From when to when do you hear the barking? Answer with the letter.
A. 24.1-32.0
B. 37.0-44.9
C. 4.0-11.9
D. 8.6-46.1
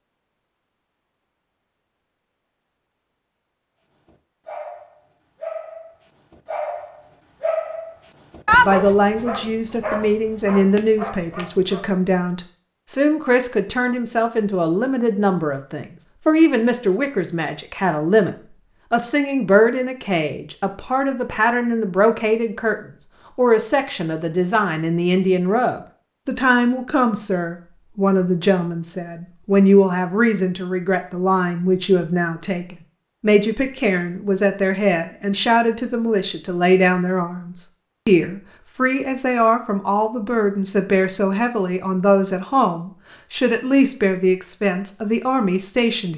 C.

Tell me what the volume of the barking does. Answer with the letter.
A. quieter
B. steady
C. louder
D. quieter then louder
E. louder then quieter
E.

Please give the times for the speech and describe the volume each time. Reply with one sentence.
The speech can be heard from 8.6 to 46.1 s, at a steady volume.